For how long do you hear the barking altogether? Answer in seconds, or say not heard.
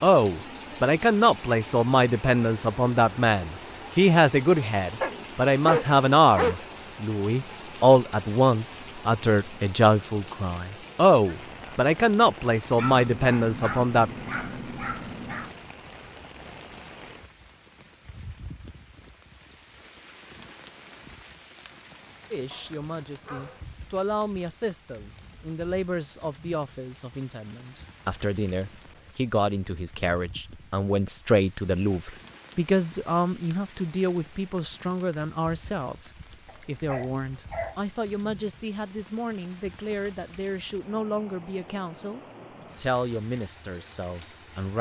7 s.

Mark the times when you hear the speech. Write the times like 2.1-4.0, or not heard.
0.0-14.1, 22.3-44.7.